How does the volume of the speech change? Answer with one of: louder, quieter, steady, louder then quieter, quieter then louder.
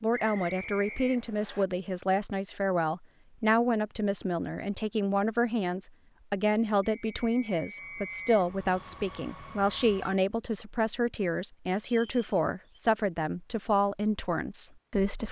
steady.